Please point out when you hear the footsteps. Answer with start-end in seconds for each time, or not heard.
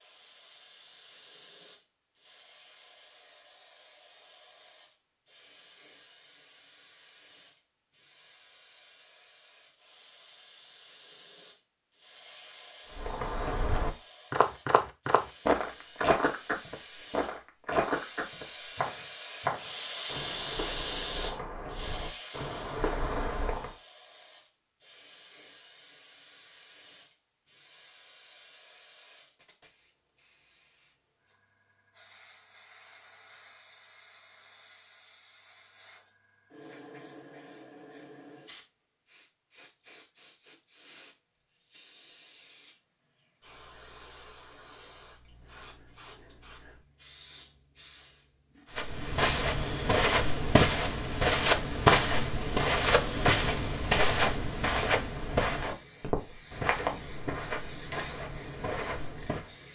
12.9-23.7, 48.8-59.5.